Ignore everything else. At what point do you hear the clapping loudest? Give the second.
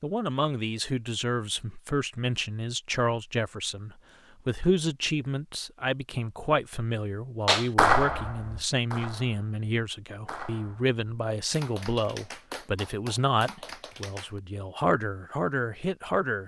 8 s.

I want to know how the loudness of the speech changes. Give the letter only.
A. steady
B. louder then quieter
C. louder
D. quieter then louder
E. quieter
A.